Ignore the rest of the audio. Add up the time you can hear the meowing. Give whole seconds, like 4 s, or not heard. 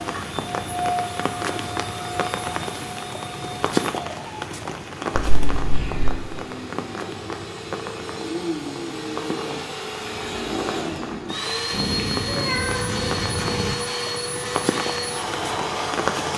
3 s.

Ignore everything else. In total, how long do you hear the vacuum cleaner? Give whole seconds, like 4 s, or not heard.
16 s.